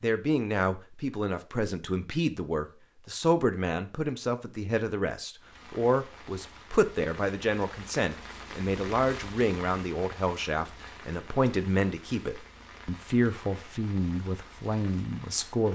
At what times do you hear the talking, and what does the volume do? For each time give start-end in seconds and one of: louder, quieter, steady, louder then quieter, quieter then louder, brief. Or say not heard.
0.0-15.6 steady.